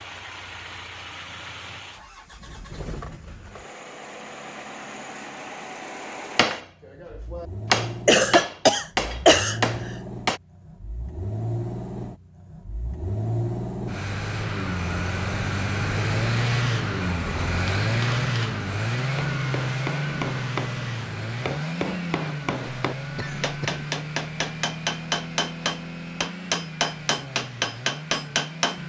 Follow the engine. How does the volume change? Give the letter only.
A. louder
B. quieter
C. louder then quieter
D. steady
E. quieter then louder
C.